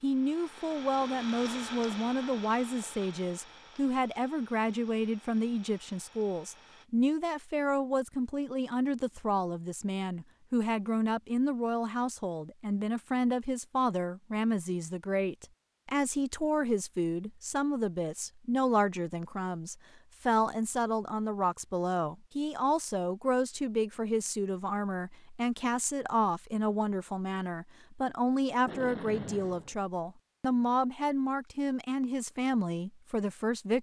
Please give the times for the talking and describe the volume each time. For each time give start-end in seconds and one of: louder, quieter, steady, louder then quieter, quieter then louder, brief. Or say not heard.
0.0-33.7 steady.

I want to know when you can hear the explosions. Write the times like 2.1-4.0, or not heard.
28.6-29.8.